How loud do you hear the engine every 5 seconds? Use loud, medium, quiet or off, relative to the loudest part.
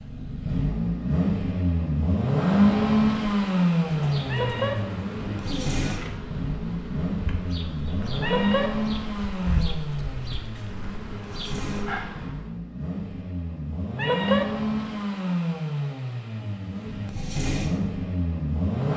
loud, medium, medium, medium.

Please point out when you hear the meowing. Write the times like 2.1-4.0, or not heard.
4.2-4.8, 8.2-8.7, 13.9-14.4.